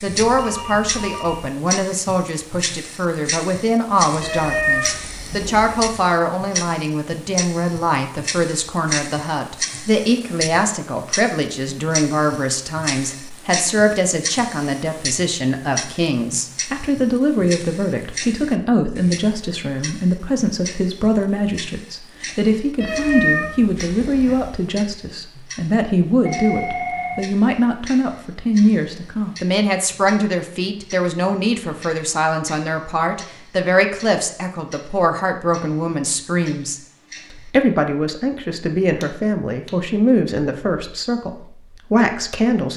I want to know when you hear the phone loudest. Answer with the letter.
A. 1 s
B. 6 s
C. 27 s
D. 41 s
C.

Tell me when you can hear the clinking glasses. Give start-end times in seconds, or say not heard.
not heard.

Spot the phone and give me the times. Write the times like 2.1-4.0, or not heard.
0.1-1.5, 26.2-27.2.